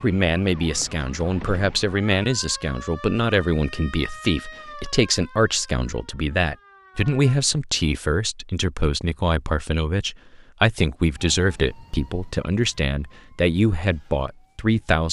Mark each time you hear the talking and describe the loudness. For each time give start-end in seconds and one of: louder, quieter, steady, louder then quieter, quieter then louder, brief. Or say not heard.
0.0-15.0 steady.